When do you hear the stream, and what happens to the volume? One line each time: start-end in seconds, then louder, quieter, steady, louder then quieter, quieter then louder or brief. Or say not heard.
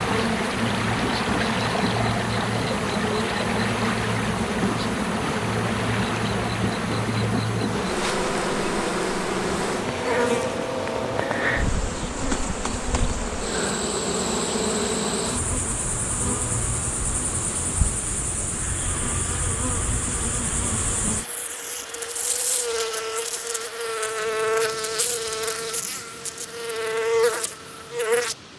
0.0-28.5 quieter.